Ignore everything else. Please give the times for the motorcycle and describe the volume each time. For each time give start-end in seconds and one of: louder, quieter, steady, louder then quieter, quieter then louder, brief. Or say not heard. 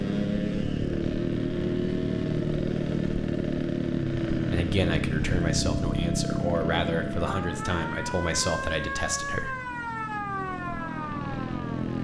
0.0-11.9 quieter.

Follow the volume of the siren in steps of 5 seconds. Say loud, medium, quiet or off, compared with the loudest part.
off, loud, loud.